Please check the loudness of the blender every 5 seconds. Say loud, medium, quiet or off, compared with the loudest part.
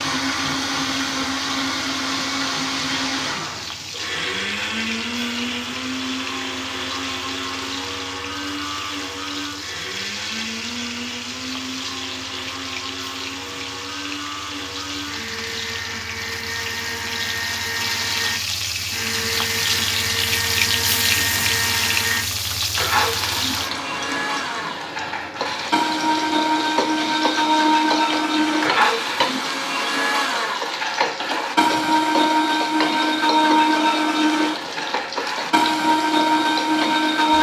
medium, medium, quiet, medium, medium, loud, loud, loud.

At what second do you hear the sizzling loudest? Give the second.
21 s.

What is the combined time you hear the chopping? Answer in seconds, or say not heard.
not heard.